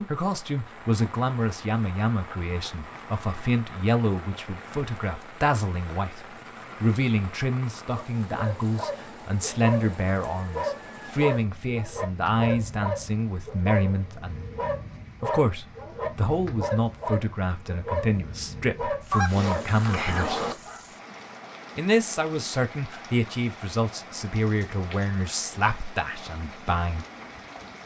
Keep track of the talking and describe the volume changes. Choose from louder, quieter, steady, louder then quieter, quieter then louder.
steady.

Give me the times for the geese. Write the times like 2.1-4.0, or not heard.
19.1-20.6.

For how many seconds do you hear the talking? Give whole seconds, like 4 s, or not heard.
25 s.